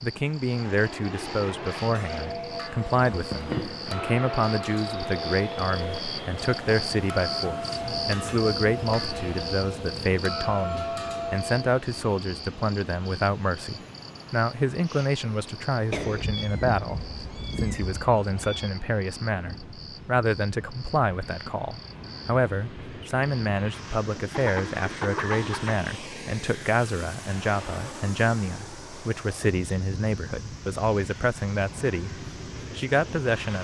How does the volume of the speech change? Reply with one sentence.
The loudness of the speech stays about the same.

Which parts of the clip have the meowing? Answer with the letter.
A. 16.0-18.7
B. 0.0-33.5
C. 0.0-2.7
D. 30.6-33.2
A.